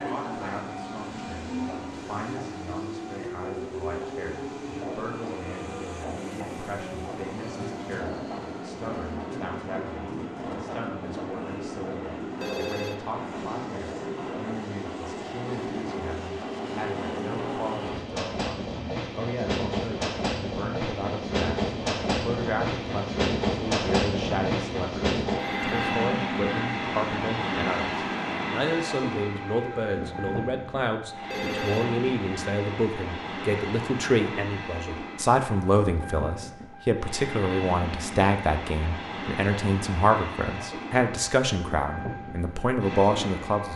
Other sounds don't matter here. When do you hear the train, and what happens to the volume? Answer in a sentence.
The train can be heard from 0.0 to 43.7 s, getting louder then quieter.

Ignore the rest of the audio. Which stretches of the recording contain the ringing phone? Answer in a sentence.
The ringing phone can be heard from 12.4 to 13.1 s, from 25.4 to 25.9 s and from 31.3 to 31.9 s.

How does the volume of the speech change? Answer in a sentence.
The loudness of the speech goes up.